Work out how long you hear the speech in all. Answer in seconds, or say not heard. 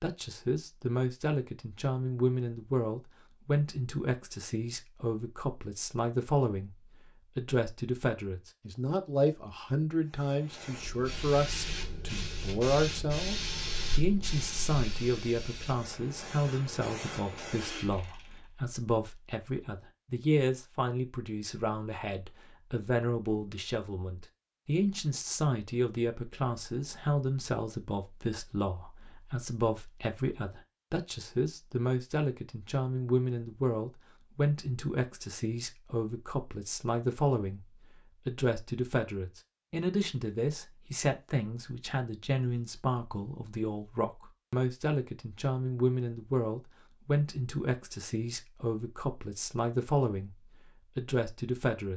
50 s.